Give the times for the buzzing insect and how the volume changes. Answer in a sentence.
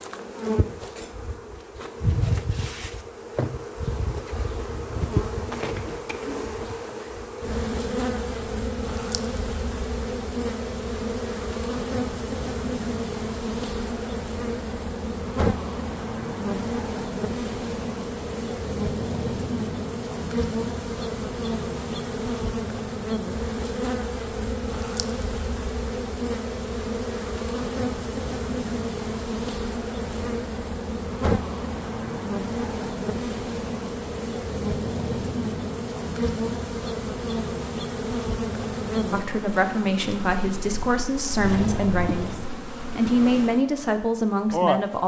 You can hear the buzzing insect from 0.0 to 45.0 s, at a steady volume.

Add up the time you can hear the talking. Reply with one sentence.
You can hear the talking for 6 seconds altogether.